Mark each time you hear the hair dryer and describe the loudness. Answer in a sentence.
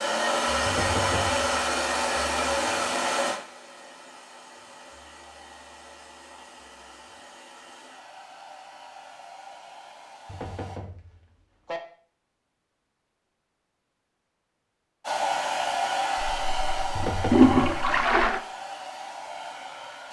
You can hear the hair dryer from 0.0 to 10.8 s, getting quieter; and from 15.0 to 20.0 s, getting quieter.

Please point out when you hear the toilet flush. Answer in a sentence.
The toilet flush can be heard from 16.2 to 18.4 s.